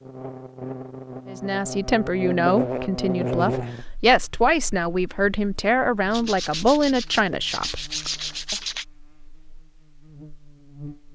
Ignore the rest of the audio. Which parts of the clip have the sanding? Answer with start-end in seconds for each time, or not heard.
6.1-8.8.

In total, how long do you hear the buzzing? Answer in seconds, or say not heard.
11 s.